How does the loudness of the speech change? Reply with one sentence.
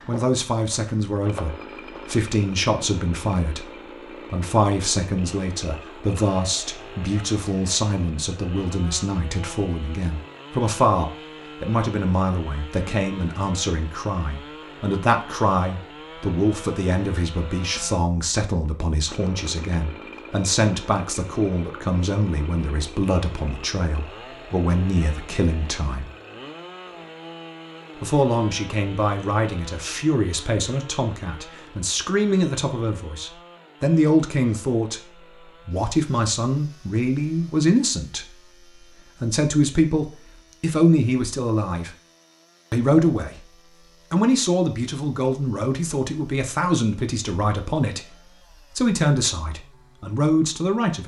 The volume of the speech stays about the same.